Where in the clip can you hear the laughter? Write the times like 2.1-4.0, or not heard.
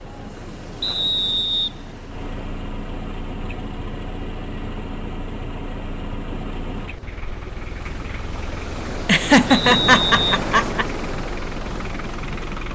9.1-10.8.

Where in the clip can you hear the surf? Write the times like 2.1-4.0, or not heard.
0.0-12.7.